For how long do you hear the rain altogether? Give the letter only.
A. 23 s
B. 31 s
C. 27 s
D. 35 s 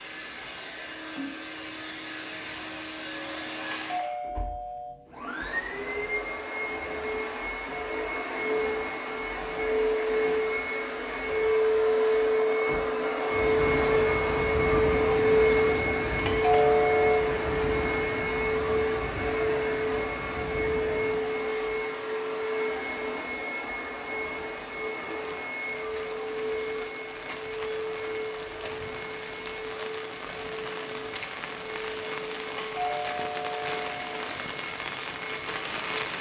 A.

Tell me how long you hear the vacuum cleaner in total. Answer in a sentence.
You can hear the vacuum cleaner for 36 seconds altogether.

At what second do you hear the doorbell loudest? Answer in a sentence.
The loudest moment of the doorbell is at 17 seconds.